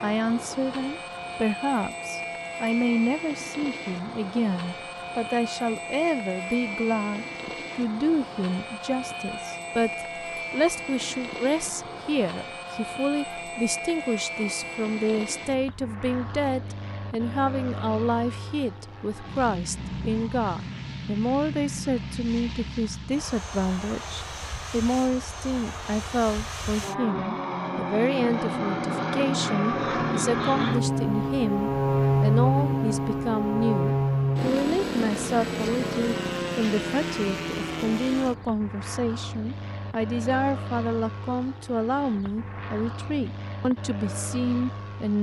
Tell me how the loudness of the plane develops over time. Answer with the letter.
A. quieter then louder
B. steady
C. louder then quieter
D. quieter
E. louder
C.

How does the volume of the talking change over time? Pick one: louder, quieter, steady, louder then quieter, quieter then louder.
steady.